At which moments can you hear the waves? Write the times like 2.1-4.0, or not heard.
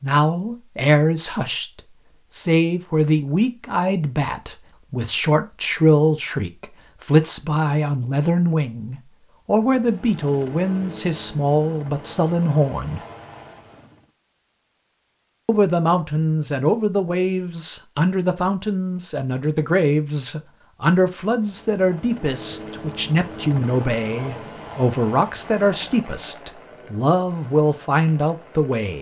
not heard.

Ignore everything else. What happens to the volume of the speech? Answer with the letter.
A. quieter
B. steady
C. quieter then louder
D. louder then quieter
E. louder
B.